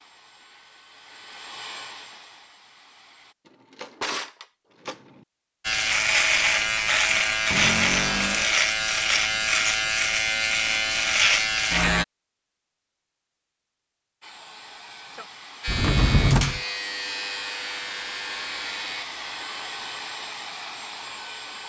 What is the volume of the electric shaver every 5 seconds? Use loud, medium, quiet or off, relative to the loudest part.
off, loud, loud, medium, off.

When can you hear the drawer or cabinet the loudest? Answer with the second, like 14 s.
16 s.